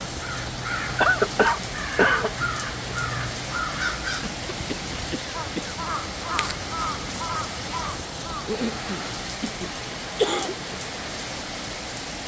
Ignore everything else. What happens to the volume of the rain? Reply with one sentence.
The volume of the rain stays about the same.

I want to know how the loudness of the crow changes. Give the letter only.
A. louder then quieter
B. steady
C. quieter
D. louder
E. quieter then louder
B.